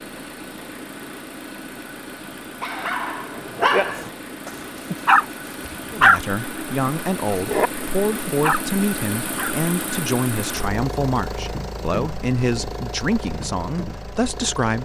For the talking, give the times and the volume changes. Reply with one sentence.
You can hear the talking from 5.9 to 14.8 s, at a steady volume.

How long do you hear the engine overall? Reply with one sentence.
The engine can be heard for 15 seconds in total.